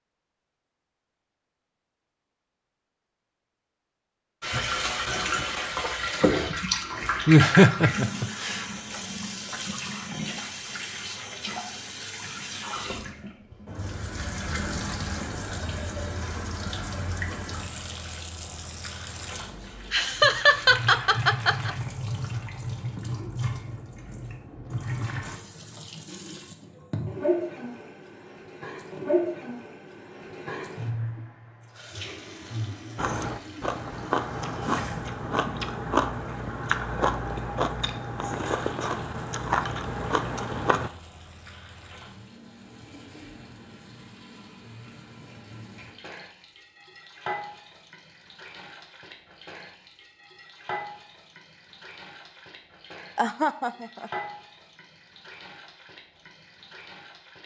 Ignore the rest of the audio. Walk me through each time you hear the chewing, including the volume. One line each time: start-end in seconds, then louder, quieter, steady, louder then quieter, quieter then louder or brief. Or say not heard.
33.0-40.9 steady.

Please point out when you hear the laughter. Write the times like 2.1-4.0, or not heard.
7.2-8.7, 19.9-21.7, 53.1-54.1.